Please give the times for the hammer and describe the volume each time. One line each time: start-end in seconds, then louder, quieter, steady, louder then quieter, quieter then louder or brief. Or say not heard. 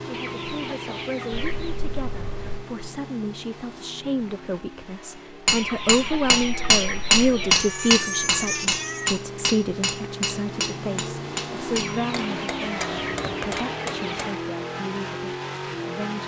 5.5-14.2 quieter.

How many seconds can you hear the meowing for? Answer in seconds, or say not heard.
4 s.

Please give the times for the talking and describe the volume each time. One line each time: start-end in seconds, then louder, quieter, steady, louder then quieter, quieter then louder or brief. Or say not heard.
0.1-16.2 louder then quieter.